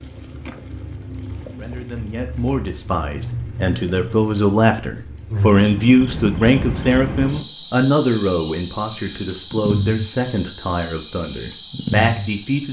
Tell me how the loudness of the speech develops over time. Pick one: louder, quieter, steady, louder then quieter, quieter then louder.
louder then quieter.